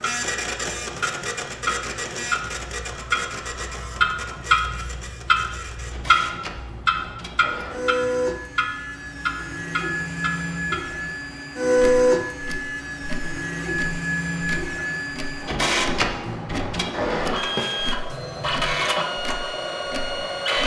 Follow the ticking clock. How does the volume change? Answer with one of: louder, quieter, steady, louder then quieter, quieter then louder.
louder then quieter.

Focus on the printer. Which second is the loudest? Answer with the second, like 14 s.
12 s.